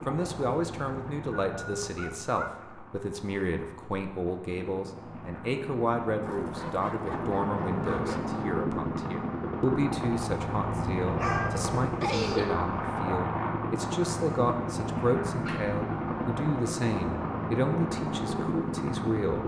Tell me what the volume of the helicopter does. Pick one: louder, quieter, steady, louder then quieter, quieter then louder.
louder.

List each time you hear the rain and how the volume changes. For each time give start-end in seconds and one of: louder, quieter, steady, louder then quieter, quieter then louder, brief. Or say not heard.
not heard.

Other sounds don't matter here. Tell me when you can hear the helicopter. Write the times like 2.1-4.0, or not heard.
0.0-19.4.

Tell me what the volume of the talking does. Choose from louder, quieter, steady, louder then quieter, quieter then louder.
steady.